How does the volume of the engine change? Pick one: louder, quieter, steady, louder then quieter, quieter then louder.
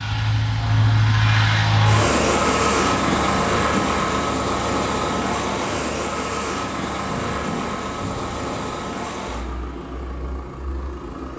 quieter.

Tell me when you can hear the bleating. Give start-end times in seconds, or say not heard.
not heard.